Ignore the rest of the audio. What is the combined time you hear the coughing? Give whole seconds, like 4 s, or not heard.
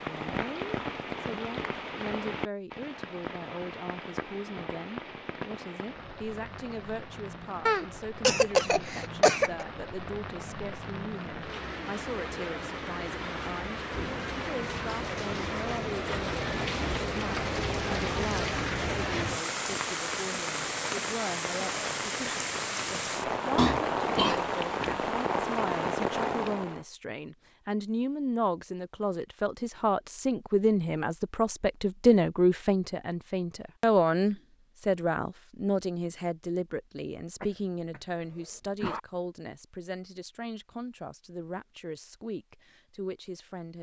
5 s.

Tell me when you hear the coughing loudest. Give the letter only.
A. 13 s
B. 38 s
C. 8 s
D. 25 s
C.